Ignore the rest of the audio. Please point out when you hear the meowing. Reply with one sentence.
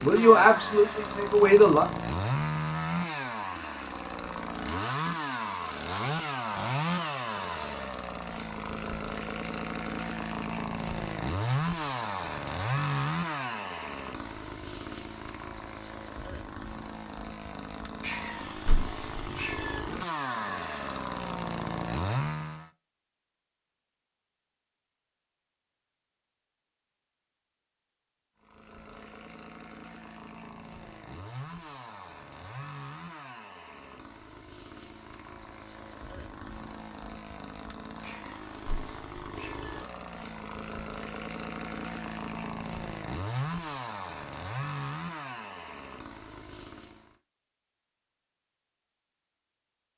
You can hear the meowing from 18.0 to 19.8 s and from 38.0 to 39.8 s.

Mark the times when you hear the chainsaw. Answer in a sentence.
The chainsaw can be heard from 0.0 to 22.7 s and from 28.4 to 47.1 s.